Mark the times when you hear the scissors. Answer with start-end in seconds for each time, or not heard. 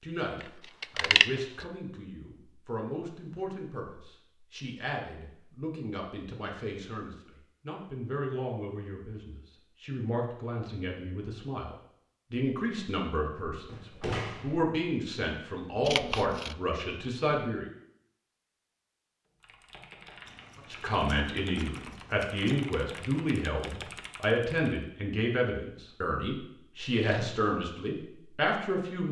0.4-1.6, 15.8-16.6, 20.2-22.6.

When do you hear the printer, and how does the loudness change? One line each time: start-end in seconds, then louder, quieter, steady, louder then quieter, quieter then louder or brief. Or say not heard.
not heard.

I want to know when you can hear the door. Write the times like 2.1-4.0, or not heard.
13.7-14.6.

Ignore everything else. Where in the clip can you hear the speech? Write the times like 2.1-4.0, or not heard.
0.0-17.6, 20.7-29.0.